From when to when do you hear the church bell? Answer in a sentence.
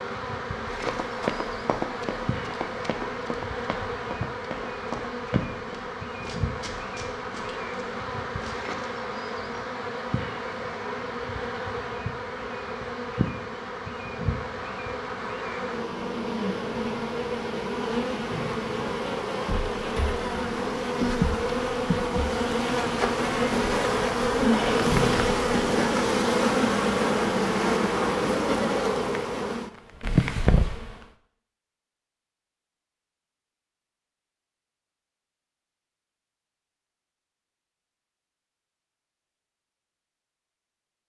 The church bell can't be heard in this clip.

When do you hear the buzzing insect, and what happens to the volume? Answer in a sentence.
You can hear the buzzing insect from 0.0 to 31.1 s, getting louder.